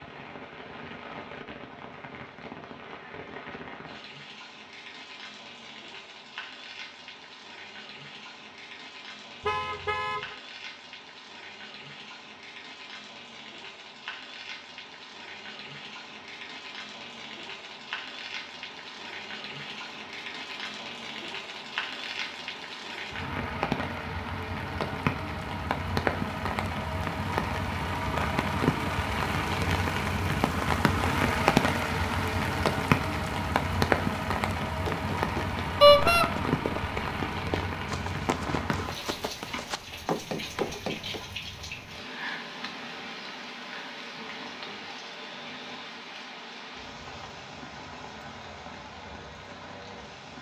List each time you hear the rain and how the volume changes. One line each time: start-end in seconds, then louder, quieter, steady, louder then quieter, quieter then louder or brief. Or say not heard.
0.0-50.3 louder then quieter.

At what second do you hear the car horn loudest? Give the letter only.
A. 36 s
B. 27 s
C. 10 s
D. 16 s
A.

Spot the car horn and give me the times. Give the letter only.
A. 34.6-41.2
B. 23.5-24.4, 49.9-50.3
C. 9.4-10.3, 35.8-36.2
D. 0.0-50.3
C.